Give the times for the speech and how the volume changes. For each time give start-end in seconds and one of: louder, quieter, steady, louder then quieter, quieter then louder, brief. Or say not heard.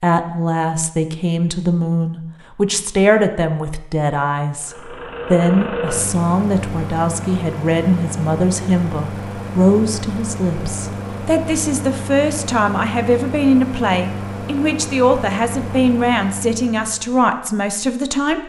0.0-18.4 steady.